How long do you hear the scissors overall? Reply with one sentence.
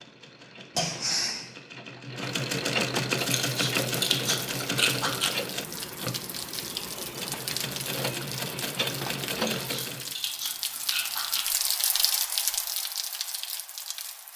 The scissors can be heard for 4 seconds in total.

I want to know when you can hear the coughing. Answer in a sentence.
The coughing can be heard from 0.8 to 1.4 s.